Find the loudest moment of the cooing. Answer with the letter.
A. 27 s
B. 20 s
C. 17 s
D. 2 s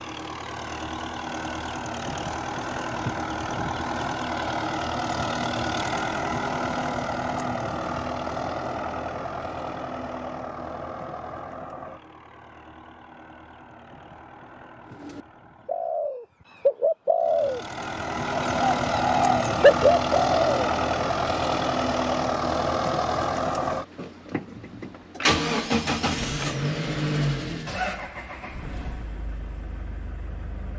B.